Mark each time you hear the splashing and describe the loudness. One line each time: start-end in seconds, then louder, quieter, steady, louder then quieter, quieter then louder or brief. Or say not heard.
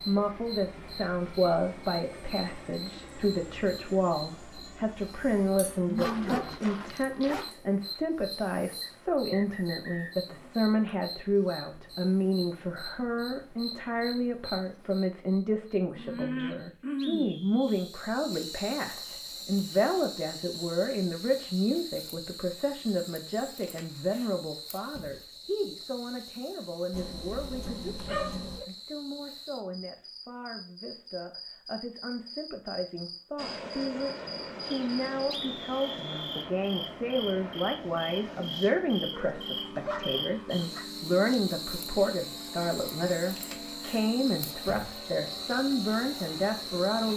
not heard.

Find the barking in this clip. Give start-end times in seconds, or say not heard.
6.0-7.5, 26.9-28.6, 39.1-40.9.